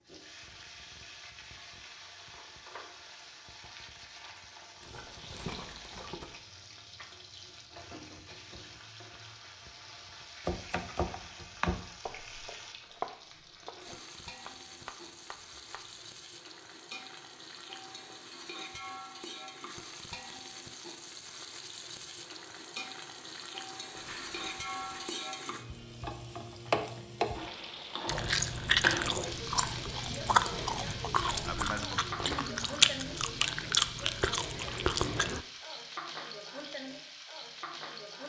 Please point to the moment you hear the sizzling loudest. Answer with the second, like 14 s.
27 s.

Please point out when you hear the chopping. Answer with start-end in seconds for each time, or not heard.
10.4-16.1.